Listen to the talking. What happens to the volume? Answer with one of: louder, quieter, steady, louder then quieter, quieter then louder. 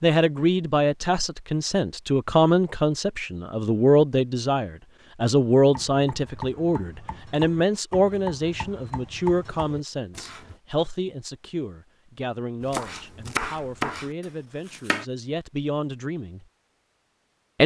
quieter.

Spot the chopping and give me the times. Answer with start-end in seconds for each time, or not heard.
5.7-10.6, 12.6-15.1.